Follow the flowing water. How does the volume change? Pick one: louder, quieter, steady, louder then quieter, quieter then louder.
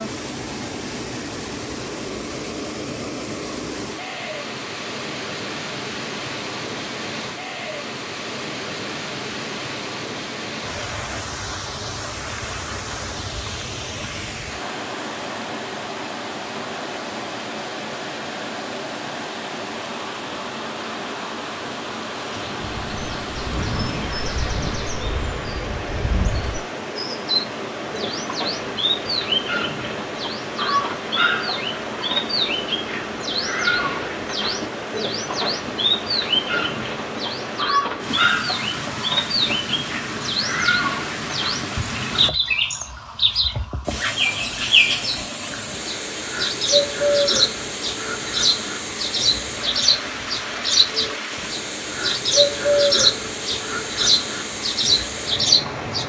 steady.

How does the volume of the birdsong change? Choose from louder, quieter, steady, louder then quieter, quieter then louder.
louder.